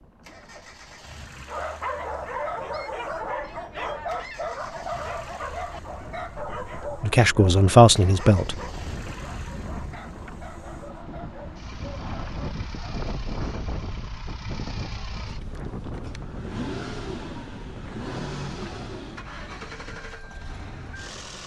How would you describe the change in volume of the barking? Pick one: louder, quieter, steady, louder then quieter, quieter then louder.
quieter.